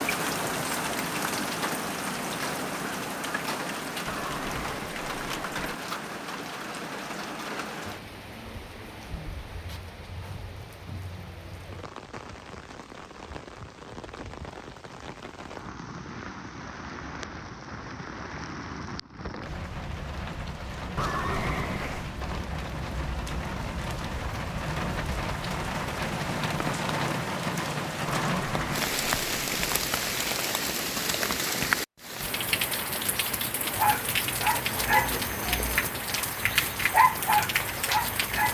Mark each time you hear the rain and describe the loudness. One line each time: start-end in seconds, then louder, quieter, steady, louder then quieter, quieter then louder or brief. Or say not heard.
0.0-38.4 quieter then louder.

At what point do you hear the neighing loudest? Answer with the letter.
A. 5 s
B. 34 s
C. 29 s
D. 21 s
D.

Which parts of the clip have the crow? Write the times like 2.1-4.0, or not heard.
not heard.